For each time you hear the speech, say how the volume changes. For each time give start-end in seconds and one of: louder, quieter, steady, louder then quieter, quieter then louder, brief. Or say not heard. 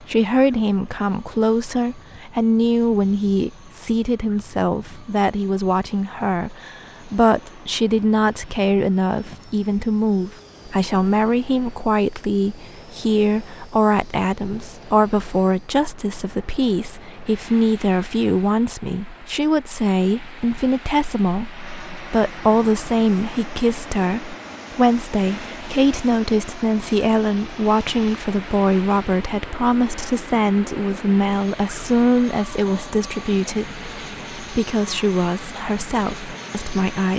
0.0-37.1 steady.